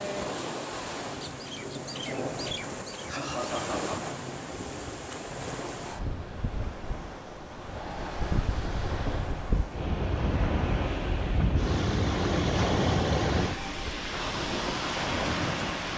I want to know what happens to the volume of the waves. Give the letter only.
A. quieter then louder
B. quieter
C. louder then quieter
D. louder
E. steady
D.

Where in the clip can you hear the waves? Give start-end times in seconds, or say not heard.
0.0-15.9.